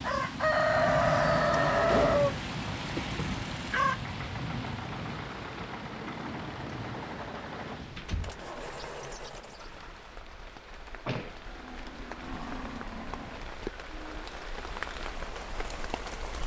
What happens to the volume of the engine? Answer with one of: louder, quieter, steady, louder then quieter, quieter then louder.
steady.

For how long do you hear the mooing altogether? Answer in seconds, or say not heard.
3 s.